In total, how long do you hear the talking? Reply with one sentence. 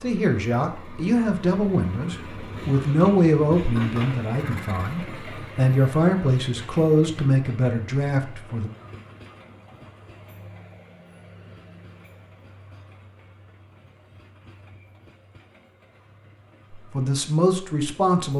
The talking can be heard for 10 seconds in total.